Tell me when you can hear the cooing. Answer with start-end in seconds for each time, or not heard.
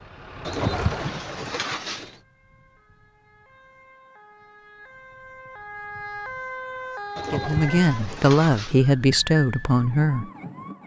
0.5-2.1, 7.2-8.8.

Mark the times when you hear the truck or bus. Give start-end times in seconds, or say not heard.
0.0-1.4.